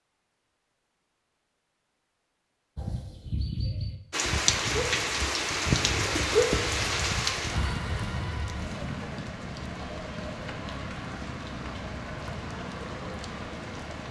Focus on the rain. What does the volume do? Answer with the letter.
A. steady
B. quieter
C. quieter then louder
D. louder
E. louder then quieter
B.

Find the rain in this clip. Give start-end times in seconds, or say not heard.
4.1-14.0.